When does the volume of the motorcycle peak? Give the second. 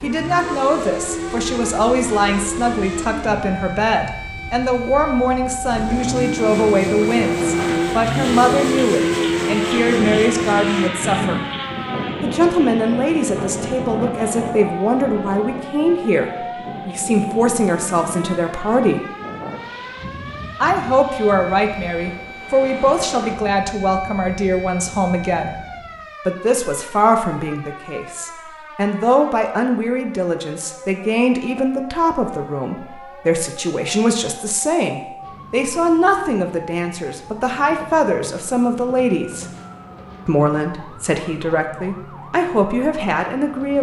9 s.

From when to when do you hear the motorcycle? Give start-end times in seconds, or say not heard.
0.0-10.9.